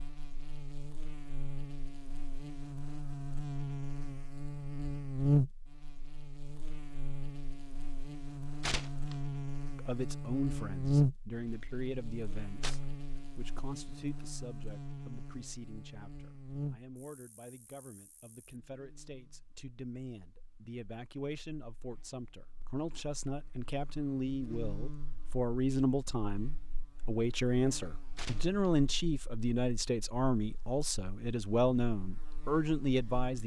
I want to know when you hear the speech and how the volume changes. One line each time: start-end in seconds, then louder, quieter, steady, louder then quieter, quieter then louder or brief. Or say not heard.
9.8-33.4 quieter then louder.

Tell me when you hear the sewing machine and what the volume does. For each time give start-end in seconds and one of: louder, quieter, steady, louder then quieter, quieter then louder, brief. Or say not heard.
not heard.